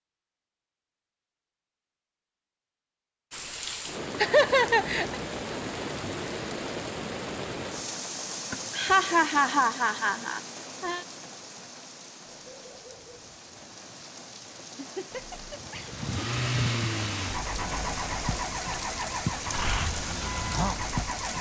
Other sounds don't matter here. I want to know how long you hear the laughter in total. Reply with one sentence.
The laughter can be heard for 5 seconds in total.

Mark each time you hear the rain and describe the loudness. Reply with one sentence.
You can hear the rain from 3.3 to 21.3 s, getting quieter then louder.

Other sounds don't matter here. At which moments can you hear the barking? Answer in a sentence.
You can hear the barking from 12.2 to 13.3 s.